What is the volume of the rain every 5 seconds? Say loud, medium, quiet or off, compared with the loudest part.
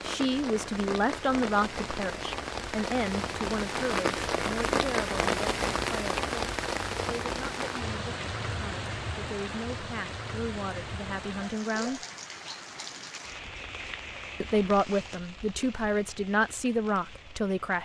loud, loud, medium, quiet.